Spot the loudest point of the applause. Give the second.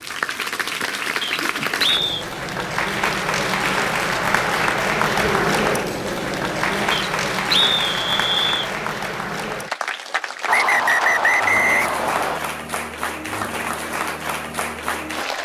5 s.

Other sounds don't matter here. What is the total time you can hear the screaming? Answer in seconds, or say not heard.
2 s.